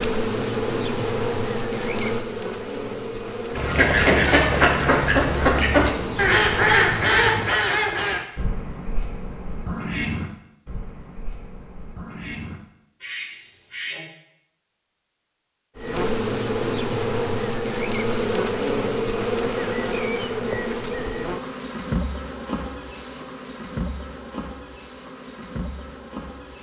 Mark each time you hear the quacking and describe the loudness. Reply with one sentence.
You can hear the quacking from 3.5 to 14.1 s, getting quieter.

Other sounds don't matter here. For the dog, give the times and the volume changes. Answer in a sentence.
You can't hear the dog here.